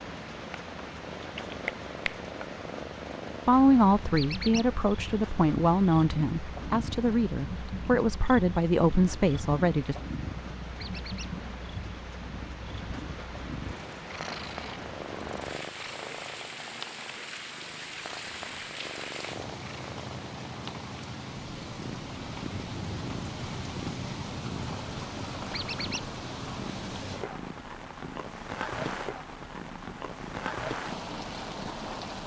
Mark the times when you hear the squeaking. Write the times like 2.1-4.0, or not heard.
4.2-4.7, 10.8-11.3, 25.5-26.1.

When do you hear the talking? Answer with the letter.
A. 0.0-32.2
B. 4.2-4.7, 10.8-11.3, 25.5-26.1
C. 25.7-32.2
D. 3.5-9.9
D.